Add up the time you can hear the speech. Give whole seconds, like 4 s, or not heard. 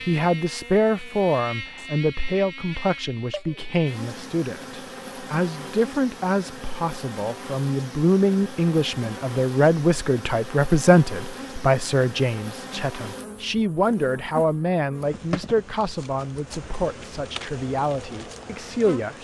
19 s.